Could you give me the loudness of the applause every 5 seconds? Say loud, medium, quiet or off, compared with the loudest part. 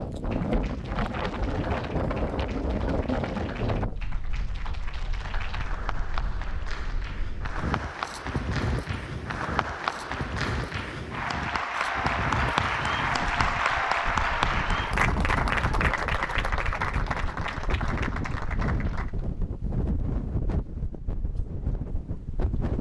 quiet, medium, loud, loud, off.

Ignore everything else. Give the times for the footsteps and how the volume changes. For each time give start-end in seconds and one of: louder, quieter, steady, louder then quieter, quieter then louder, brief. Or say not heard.
not heard.